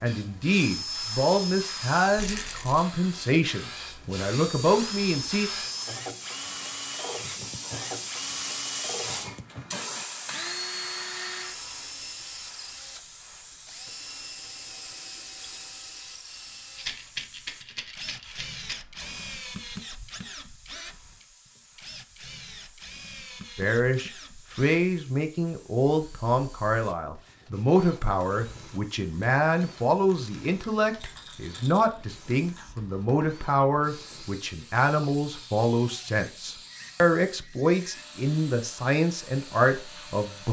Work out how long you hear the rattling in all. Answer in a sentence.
The rattling can be heard for 4 seconds in total.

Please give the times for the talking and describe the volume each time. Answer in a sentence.
You can hear the talking from 0.0 to 5.5 s, at a steady volume; and from 23.6 to 40.4 s, at a steady volume.